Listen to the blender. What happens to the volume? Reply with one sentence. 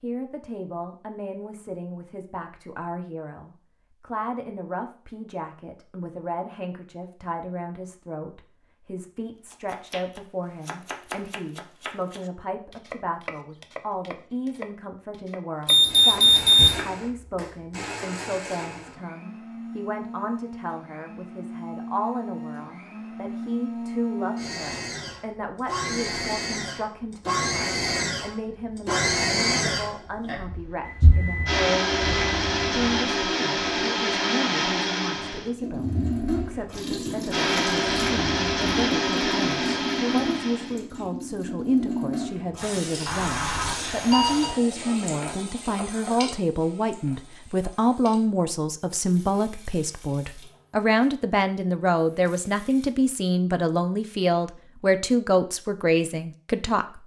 The loudness of the blender goes up.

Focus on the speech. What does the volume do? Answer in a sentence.
The volume of the speech goes up.